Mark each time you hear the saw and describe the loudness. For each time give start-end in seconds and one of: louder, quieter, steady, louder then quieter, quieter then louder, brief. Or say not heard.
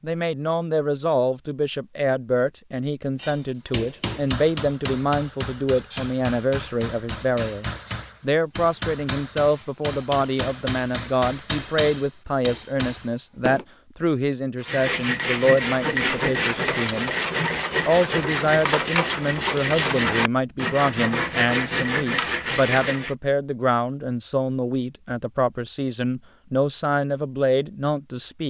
14.6-23.1 steady.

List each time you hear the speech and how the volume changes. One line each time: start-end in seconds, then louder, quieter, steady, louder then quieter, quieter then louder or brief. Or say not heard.
0.0-17.1 steady
17.9-28.4 steady.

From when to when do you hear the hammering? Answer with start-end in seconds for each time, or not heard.
3.2-13.7.